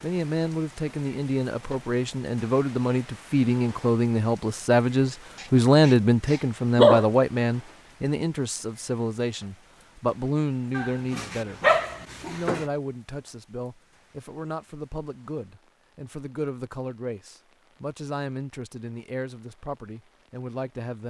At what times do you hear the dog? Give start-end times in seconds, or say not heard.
5.4-7.0, 10.8-12.7.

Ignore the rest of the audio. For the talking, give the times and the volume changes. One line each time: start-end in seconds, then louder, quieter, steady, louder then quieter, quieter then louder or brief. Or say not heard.
0.0-11.6 louder then quieter
12.2-21.0 steady.